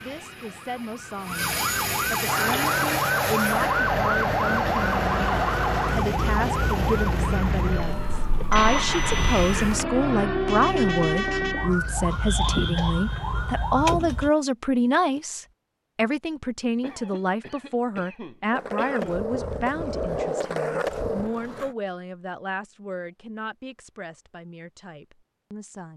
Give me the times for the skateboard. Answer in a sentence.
You can hear the skateboard from 18.5 to 21.8 s.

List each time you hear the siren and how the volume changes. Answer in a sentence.
The siren can be heard from 0.0 to 14.3 s, at a steady volume.